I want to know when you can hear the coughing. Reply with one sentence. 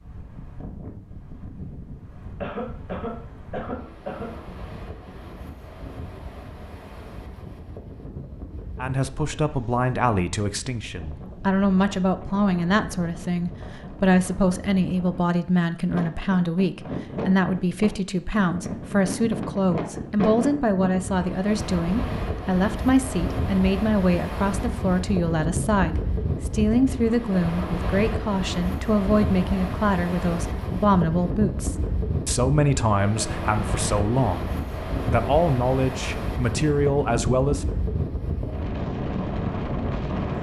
The coughing can be heard from 2.4 to 4.3 s.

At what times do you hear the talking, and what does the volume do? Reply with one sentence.
You can hear the talking from 8.8 to 37.6 s, at a steady volume.